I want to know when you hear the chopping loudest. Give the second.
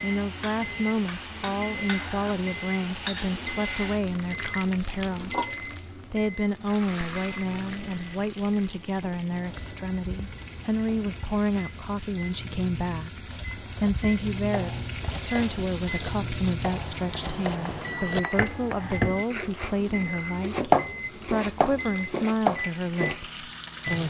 21 s.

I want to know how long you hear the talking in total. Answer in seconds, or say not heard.
23 s.